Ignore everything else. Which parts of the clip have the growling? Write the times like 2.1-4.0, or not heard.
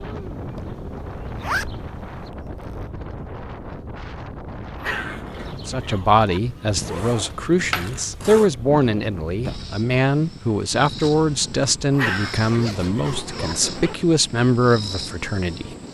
4.8-6.4, 11.9-13.6.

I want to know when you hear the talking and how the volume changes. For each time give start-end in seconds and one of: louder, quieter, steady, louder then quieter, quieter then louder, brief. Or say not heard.
5.7-15.8 steady.